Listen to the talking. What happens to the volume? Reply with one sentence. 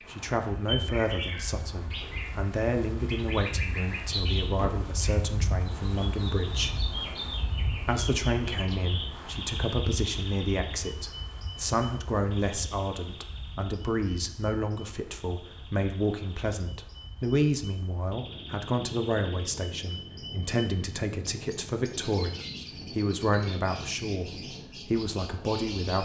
The volume of the talking stays about the same.